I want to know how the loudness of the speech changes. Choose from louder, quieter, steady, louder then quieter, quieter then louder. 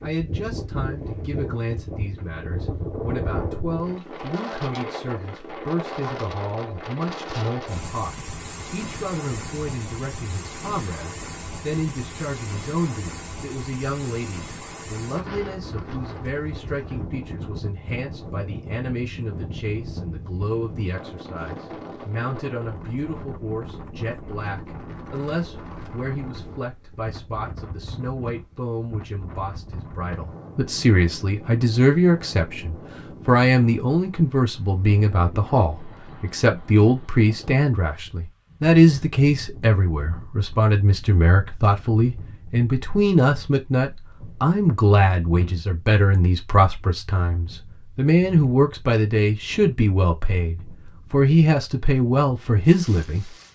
louder.